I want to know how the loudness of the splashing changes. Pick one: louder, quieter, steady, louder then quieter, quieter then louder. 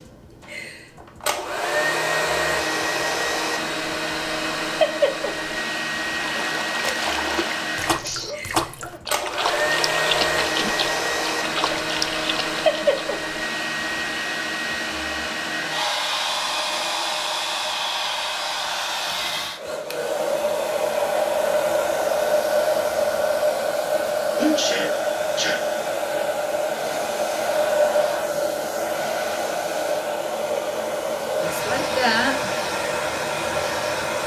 steady.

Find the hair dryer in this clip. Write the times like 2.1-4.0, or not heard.
0.0-34.2.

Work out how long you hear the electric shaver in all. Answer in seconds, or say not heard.
not heard.